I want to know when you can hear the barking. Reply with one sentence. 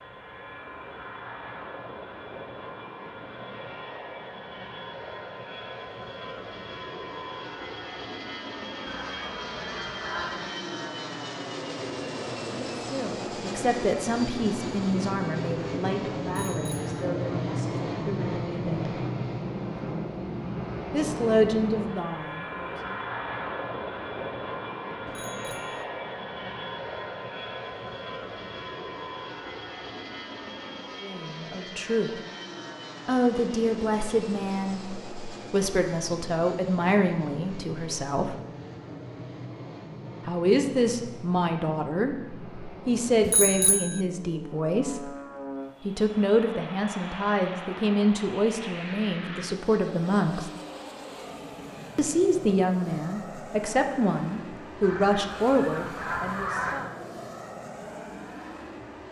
You can't hear the barking here.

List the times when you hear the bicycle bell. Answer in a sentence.
The bicycle bell can be heard from 16.3 to 16.9 s, from 25.1 to 25.8 s and from 43.2 to 44.0 s.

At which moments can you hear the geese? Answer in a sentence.
You can hear the geese from 8.8 to 10.5 s and from 54.8 to 56.8 s.